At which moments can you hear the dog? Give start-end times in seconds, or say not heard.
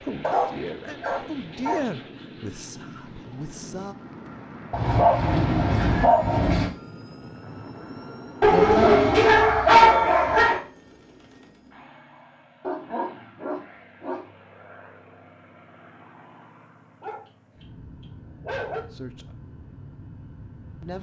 0.2-1.8, 4.7-6.7, 8.4-10.6, 12.6-14.2, 17.0-17.6, 18.4-18.8.